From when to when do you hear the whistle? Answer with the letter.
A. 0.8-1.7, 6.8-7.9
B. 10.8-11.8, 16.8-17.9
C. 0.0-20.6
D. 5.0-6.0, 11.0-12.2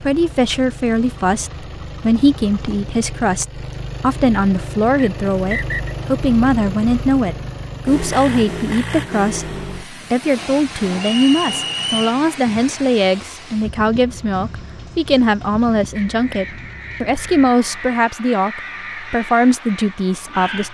D.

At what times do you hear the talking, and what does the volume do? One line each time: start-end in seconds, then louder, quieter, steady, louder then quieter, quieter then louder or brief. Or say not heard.
0.0-20.6 steady.